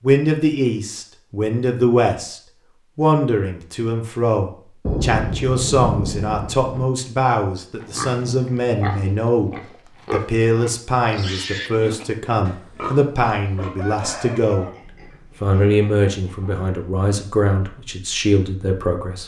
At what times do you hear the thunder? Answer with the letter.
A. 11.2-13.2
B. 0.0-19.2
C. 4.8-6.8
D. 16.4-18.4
C.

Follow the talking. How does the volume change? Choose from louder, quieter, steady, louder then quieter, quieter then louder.
steady.